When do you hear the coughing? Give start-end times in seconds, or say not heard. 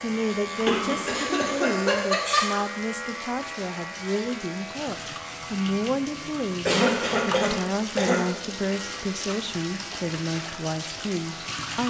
0.7-2.6, 6.7-8.2.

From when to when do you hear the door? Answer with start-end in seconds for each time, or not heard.
not heard.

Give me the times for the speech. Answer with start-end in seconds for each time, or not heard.
0.0-11.8.